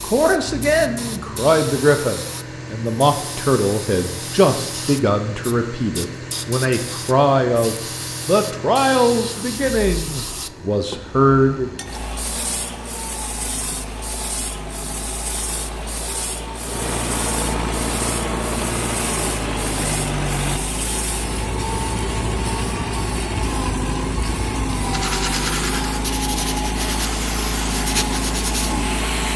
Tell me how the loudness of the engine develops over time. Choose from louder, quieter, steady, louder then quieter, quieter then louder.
louder.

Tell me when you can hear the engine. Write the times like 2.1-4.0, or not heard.
0.0-29.3.